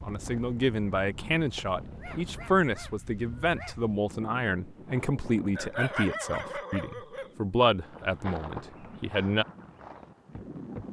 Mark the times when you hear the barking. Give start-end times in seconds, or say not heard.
1.9-3.9, 5.5-7.3.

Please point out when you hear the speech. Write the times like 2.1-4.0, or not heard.
0.0-9.4.